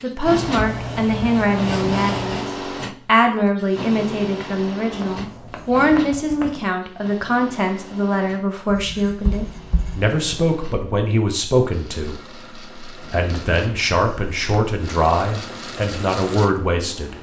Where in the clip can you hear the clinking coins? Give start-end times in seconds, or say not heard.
not heard.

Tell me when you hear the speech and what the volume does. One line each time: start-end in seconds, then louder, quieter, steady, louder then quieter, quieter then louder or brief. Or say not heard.
0.0-2.5 brief
3.0-17.1 steady.